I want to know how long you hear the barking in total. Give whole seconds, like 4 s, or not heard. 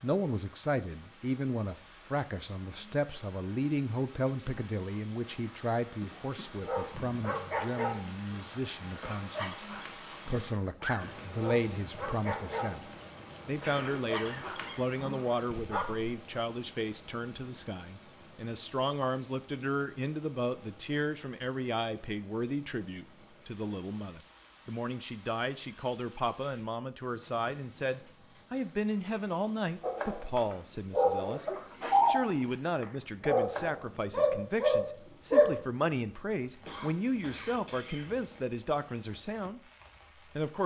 15 s.